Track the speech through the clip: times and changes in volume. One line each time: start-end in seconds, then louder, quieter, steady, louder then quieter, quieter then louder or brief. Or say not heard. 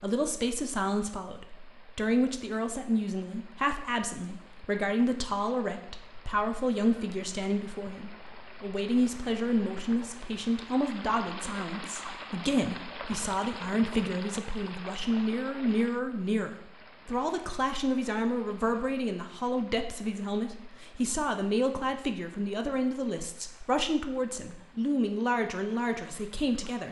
0.0-26.8 steady.